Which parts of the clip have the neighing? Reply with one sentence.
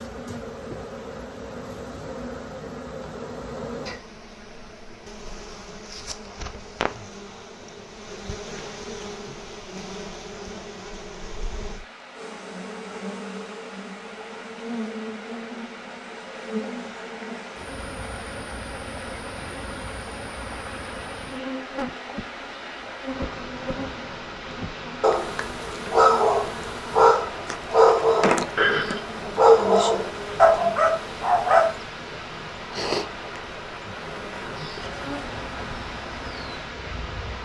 The neighing can be heard from 28.6 to 29.1 s.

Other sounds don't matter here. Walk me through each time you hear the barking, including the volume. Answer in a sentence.
You can hear the barking from 25.0 to 31.8 s, at a steady volume.